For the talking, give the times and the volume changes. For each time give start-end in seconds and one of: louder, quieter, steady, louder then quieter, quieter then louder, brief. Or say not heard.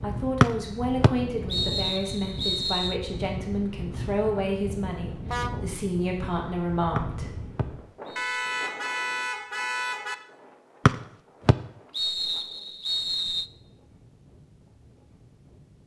0.0-7.3 steady.